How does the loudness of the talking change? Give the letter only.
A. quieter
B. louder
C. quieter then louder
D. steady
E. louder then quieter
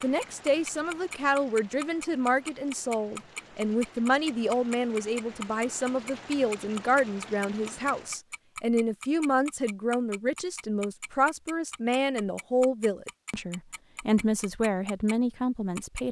D.